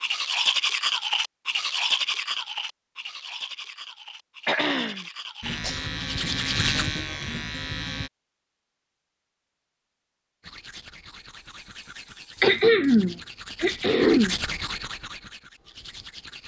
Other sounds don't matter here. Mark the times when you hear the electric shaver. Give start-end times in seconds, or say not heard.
5.4-8.1.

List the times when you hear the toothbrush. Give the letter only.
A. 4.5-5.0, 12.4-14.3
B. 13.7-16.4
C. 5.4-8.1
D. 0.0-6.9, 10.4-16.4
D.